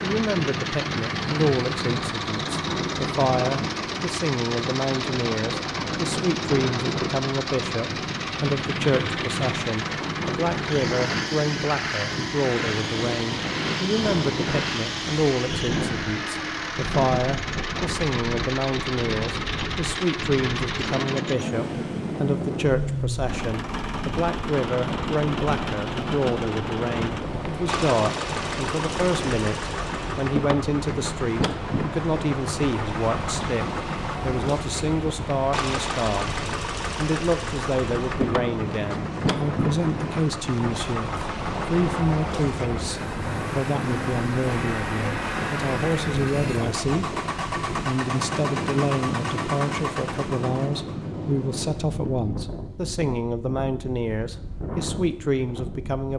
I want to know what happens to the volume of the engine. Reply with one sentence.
The volume of the engine stays about the same.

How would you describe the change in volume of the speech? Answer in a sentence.
The volume of the speech stays about the same.